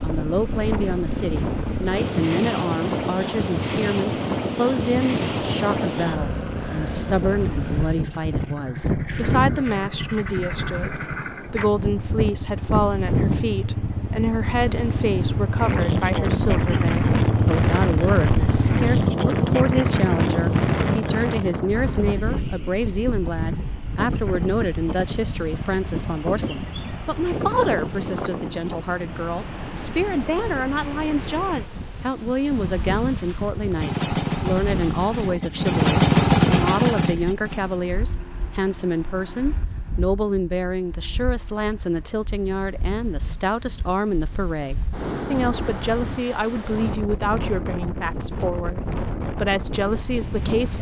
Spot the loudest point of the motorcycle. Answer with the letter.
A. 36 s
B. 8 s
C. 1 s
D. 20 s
A.